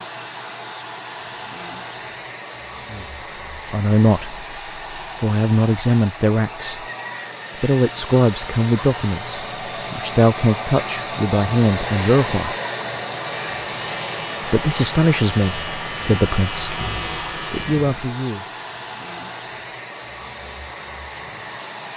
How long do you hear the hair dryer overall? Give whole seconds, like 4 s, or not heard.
22 s.